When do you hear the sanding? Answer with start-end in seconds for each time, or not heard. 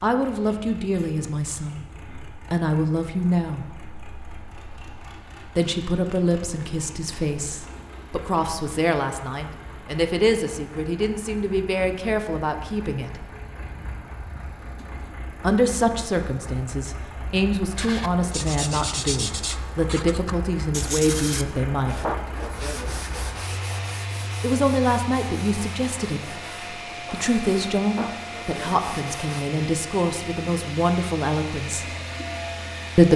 17.8-29.4.